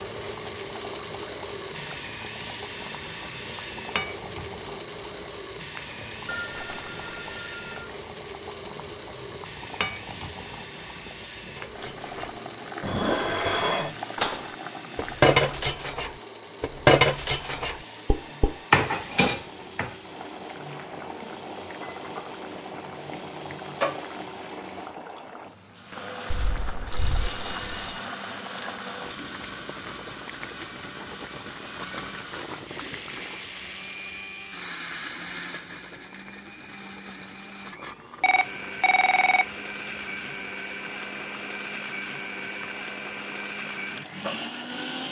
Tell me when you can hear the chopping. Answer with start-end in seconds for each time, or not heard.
not heard.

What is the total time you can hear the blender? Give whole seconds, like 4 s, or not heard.
45 s.